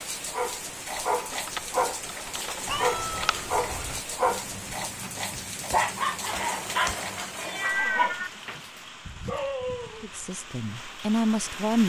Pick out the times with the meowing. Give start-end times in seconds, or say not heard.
2.6-4.0, 6.3-8.3.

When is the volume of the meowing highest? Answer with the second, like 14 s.
8 s.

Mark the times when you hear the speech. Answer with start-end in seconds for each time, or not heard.
10.0-11.8.